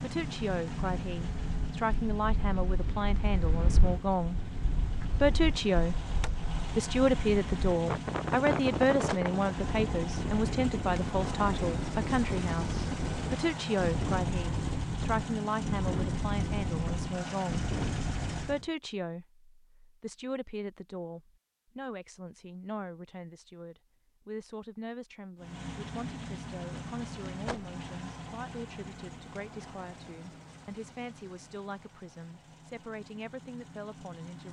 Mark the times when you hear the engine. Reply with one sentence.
The engine can be heard from 0.0 to 18.6 s and from 25.4 to 34.4 s.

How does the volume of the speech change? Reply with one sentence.
The loudness of the speech goes down.